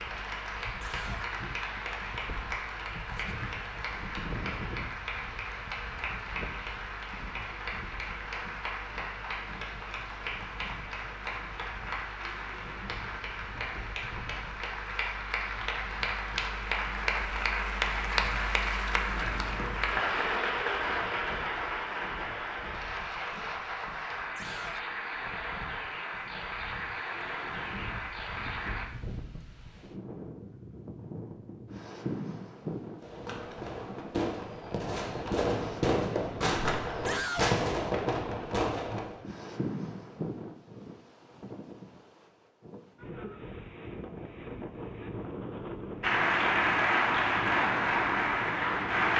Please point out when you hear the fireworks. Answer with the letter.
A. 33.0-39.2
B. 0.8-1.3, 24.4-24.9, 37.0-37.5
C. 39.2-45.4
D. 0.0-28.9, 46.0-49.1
A.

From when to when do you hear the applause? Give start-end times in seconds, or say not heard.
0.0-28.9, 46.0-49.1.